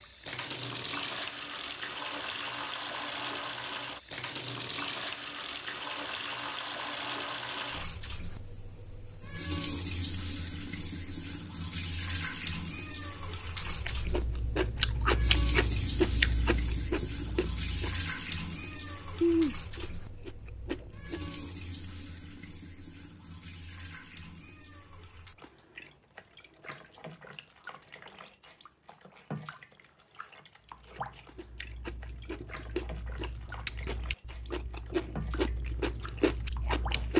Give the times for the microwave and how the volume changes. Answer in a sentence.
The microwave can't be heard in this clip.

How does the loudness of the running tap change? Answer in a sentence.
The loudness of the running tap goes down.